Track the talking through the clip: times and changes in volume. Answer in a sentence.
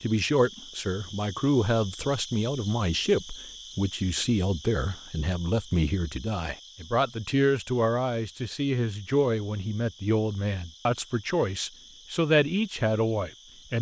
You can hear the talking from 0.0 to 13.7 s, at a steady volume.